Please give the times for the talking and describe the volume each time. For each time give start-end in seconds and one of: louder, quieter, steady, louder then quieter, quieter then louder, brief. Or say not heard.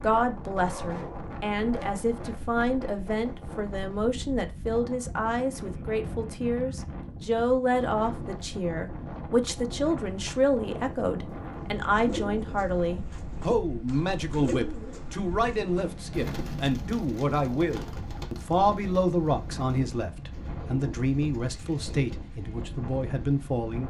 0.0-23.8 steady.